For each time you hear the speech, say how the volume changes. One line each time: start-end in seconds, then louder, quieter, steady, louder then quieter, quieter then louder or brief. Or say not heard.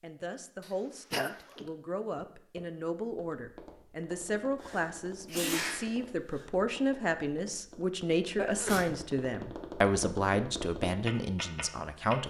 0.0-12.2 louder.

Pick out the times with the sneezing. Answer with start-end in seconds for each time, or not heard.
0.6-1.6, 4.6-6.5, 8.3-9.0.